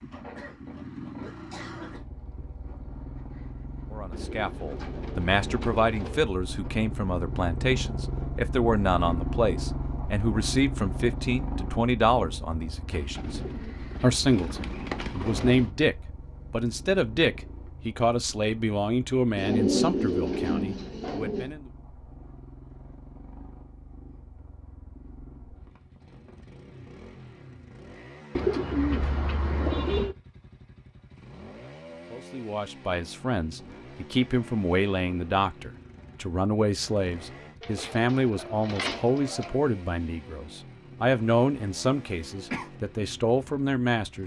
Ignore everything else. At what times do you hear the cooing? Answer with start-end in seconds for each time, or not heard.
4.1-6.2, 12.9-15.7, 19.4-21.5, 28.4-30.1, 37.6-39.5.